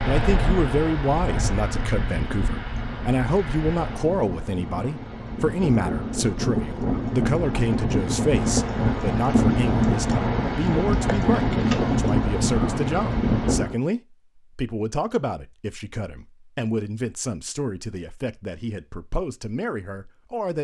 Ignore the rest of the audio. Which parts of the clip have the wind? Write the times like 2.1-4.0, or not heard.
0.0-13.8.